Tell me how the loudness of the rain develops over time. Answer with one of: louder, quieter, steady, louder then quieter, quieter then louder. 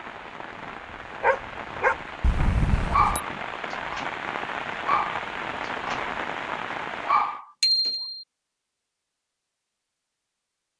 louder.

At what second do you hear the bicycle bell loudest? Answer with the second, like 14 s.
8 s.